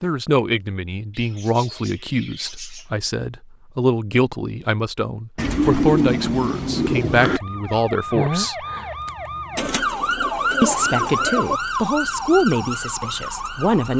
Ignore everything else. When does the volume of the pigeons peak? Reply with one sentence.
The loudest moment of the pigeons is at 6 seconds.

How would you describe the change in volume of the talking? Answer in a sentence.
The volume of the talking stays about the same.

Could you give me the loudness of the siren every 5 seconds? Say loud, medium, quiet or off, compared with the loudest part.
off, loud, loud.